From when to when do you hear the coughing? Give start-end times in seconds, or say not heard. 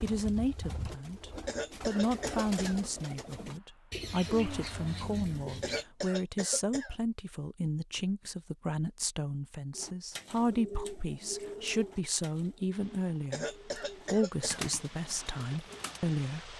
1.4-2.8, 5.6-7.0, 13.3-14.7.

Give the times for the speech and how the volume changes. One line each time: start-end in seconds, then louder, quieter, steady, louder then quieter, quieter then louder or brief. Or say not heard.
0.0-16.5 steady.